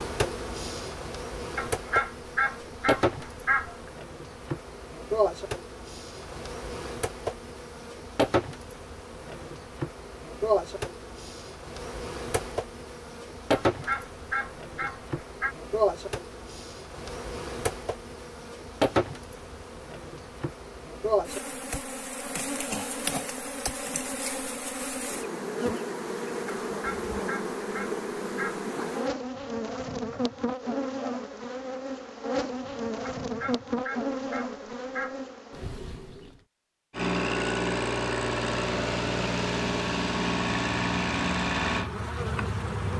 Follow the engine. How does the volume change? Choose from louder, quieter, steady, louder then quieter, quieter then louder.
steady.